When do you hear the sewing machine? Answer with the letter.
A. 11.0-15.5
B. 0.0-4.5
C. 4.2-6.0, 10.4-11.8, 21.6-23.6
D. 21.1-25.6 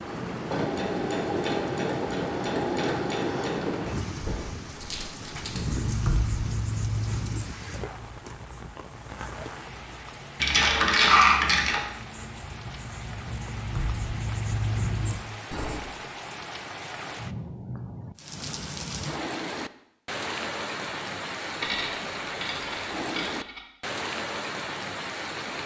B.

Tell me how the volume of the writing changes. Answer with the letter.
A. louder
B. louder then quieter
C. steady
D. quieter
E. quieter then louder
E.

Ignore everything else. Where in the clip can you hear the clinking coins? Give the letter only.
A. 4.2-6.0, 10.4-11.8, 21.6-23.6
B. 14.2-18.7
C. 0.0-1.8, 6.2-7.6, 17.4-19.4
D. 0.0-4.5
A.